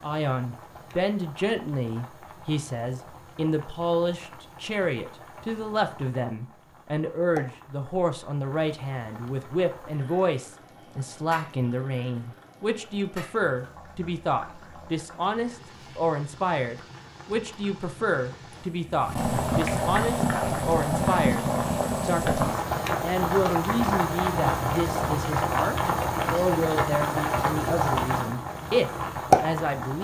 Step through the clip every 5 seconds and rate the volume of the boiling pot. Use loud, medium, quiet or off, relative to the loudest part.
quiet, quiet, quiet, medium, loud, loud.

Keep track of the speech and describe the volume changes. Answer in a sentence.
The loudness of the speech stays about the same.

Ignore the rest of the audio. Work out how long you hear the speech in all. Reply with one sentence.
You can hear the speech for 30 seconds altogether.